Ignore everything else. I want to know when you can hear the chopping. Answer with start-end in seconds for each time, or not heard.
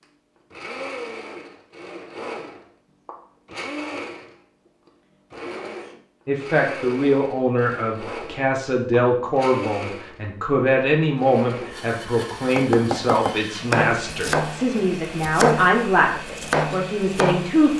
12.4-17.7.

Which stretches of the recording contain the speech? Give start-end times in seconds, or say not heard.
6.2-17.7.